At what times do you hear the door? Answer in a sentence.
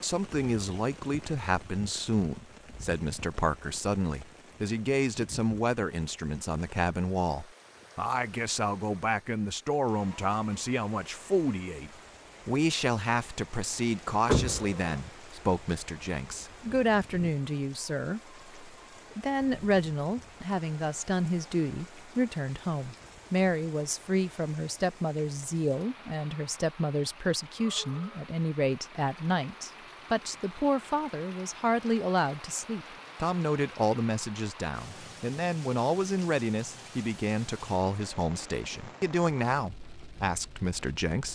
You can hear the door from 14.2 to 15.0 s.